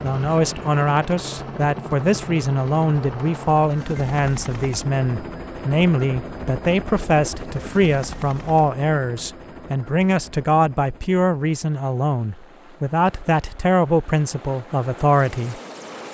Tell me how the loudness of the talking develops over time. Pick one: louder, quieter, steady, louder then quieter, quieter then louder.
steady.